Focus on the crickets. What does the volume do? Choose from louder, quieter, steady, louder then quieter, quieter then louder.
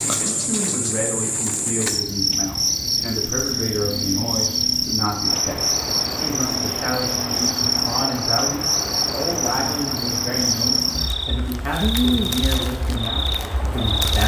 steady.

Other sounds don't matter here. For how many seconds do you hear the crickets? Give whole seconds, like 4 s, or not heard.
14 s.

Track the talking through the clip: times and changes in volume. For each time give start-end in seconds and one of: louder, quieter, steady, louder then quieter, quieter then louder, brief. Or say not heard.
0.0-14.2 steady.